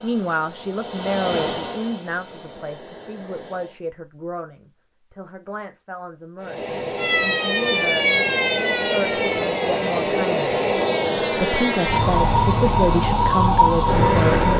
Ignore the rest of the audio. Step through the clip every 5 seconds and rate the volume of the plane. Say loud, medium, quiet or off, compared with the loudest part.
medium, loud, loud.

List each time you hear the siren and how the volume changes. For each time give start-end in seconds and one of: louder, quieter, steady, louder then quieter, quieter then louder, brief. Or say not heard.
7.0-14.5 quieter then louder.